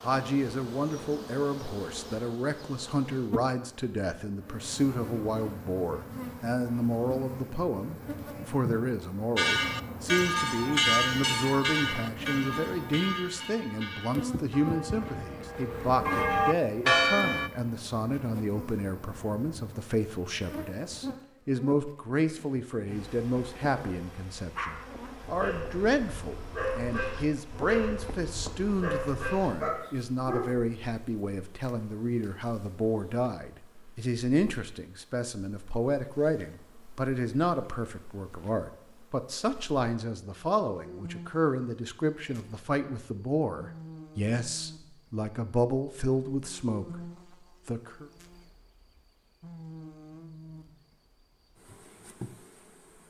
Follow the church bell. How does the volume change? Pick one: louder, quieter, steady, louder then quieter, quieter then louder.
quieter then louder.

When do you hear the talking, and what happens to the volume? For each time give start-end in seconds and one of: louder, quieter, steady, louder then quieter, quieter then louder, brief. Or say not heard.
0.0-48.0 steady.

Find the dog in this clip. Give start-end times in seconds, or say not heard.
24.6-30.7.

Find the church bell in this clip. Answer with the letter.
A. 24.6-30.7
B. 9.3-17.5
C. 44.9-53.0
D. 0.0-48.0
B.